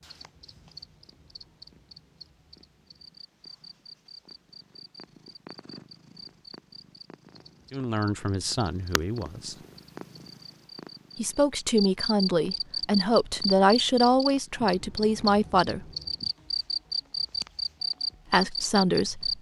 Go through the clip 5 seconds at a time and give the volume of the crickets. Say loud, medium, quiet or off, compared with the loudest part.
quiet, quiet, loud, loud.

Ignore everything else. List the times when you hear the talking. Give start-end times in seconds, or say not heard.
7.7-9.6, 11.2-15.8, 18.3-19.3.